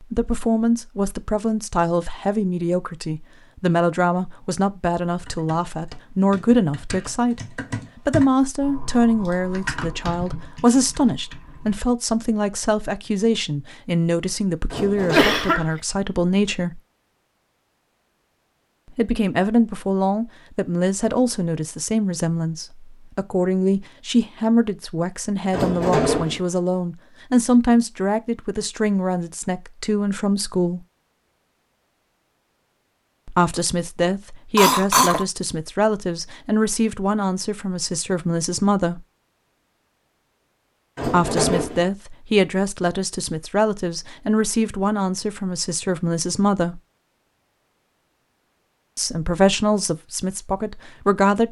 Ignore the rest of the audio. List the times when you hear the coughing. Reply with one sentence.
The coughing can be heard from 15.1 to 15.7 s and from 34.5 to 35.2 s.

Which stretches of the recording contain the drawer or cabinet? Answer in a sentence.
The drawer or cabinet can be heard from 14.7 to 15.6 s, from 25.5 to 26.4 s and from 41.0 to 41.9 s.